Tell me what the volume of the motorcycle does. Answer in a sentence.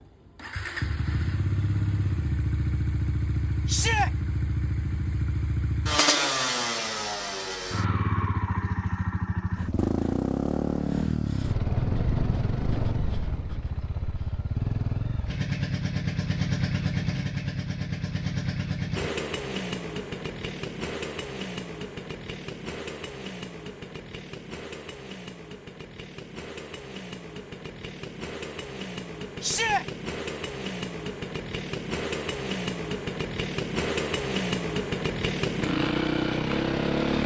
The volume of the motorcycle goes down, then up.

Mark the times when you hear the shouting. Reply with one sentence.
The shouting can be heard from 3.6 to 4.1 s and from 29.4 to 29.9 s.